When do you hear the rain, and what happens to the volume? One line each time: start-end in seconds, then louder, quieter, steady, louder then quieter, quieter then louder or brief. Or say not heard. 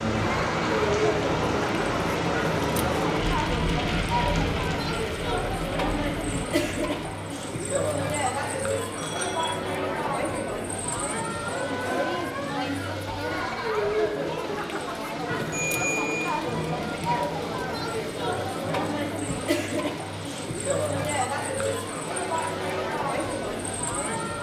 0.0-24.3 quieter.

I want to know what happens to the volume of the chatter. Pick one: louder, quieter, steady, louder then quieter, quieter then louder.
steady.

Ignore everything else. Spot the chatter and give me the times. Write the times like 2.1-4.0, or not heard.
0.1-24.3.